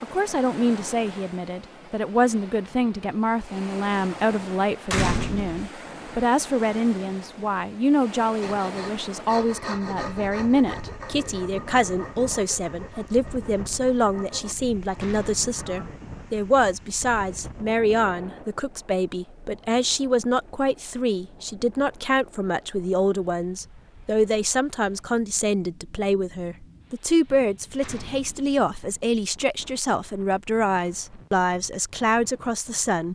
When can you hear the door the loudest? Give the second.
5 s.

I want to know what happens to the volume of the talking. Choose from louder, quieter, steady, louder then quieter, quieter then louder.
steady.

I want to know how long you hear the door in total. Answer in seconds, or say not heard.
2 s.